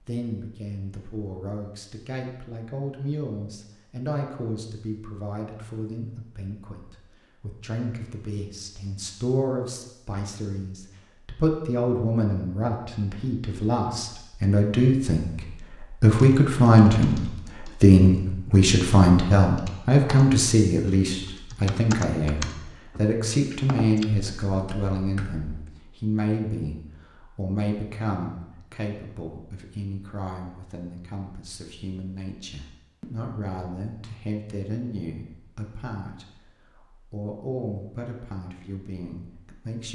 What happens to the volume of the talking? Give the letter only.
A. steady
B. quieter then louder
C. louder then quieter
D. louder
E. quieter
C.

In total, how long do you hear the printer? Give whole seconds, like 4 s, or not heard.
not heard.